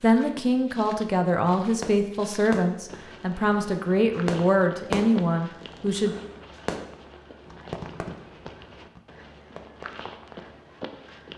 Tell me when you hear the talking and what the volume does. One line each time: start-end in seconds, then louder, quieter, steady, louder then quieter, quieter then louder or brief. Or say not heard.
0.0-6.2 steady.